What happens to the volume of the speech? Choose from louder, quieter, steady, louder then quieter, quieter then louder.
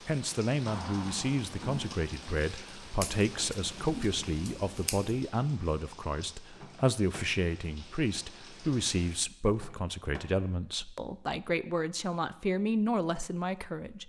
steady.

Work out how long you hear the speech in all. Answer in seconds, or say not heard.
14 s.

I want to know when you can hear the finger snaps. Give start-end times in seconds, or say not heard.
not heard.